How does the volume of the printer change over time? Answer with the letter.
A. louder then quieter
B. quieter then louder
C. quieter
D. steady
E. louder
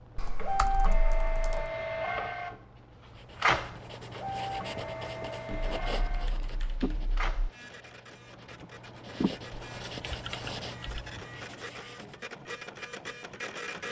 B.